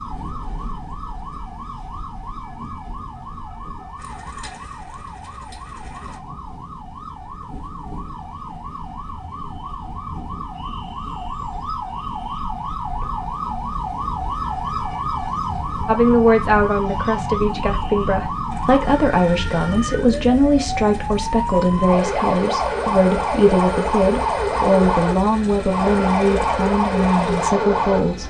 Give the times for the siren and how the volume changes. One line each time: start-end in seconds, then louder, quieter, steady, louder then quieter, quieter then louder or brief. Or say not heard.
0.0-28.2 louder.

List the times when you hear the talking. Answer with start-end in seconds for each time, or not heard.
15.8-28.2.